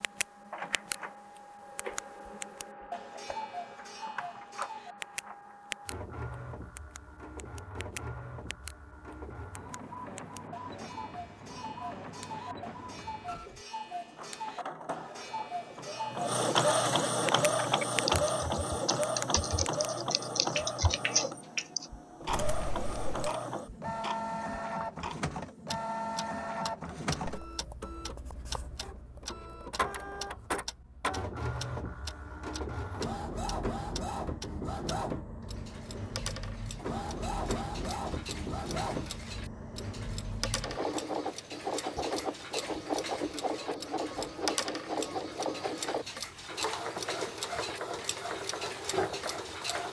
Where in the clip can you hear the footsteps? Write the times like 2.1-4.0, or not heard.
not heard.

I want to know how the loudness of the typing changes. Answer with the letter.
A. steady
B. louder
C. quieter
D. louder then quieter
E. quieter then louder
D.